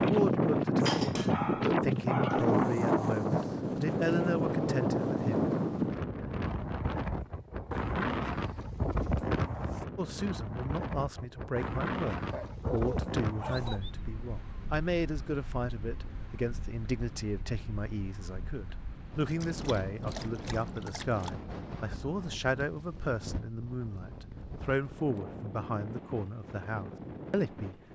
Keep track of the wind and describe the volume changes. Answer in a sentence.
The volume of the wind goes down.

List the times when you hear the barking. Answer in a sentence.
The barking can be heard from 0.8 to 2.6 s, from 12.3 to 13.9 s and from 19.4 to 21.3 s.